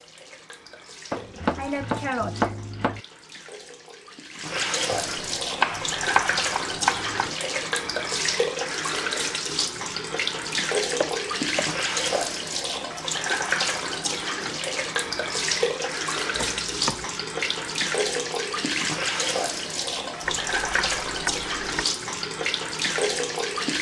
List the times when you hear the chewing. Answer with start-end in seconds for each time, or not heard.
not heard.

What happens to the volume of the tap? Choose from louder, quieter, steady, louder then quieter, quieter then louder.
louder.